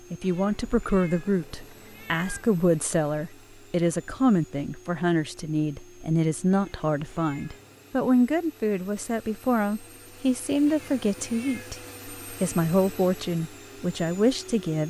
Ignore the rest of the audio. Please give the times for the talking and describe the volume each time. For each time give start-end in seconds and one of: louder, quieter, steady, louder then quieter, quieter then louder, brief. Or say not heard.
0.1-14.8 steady.